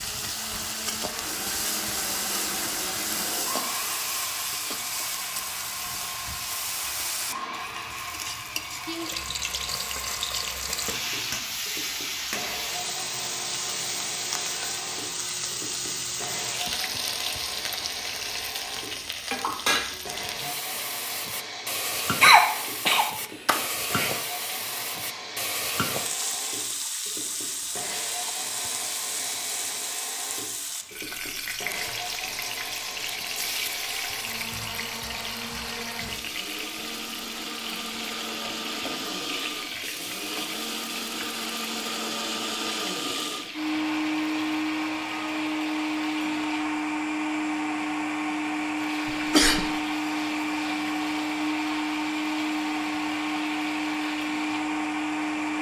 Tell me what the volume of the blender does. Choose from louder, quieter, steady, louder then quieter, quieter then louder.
louder.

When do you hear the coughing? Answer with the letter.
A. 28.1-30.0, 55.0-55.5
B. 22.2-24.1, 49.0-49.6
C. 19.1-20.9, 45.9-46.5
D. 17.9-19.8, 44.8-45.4
B.